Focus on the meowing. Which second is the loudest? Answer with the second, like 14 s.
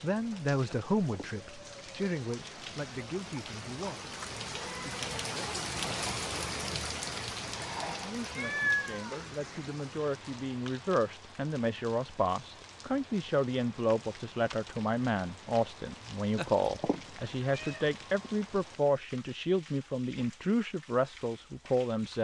9 s.